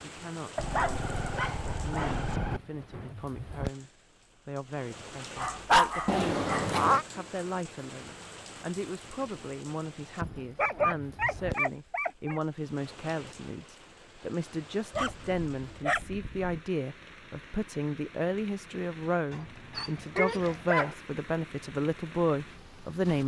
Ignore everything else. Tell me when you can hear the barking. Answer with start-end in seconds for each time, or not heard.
0.6-2.6, 5.3-6.8, 10.6-12.4, 14.9-16.6, 19.3-20.9.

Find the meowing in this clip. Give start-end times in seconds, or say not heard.
6.0-7.0.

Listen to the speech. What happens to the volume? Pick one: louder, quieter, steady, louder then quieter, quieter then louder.
louder.